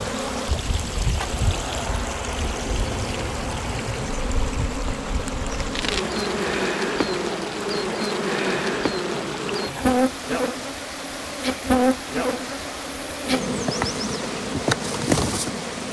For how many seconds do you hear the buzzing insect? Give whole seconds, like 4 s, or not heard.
16 s.